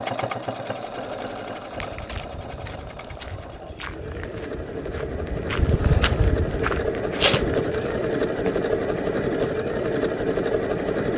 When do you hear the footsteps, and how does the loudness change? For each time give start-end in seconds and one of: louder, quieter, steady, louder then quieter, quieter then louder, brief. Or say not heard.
1.7-8.6 louder then quieter.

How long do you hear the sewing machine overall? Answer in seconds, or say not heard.
11 s.